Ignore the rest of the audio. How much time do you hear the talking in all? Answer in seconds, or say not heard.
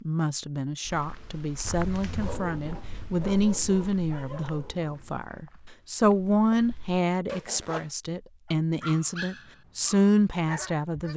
11 s.